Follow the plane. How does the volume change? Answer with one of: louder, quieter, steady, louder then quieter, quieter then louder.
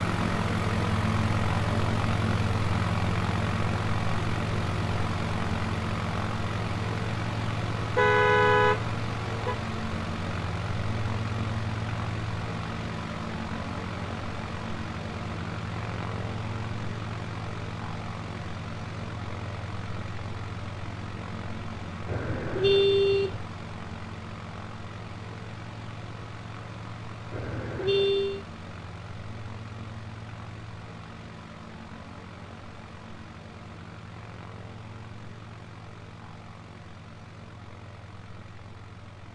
quieter.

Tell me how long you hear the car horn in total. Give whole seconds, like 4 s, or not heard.
4 s.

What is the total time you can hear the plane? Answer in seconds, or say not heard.
39 s.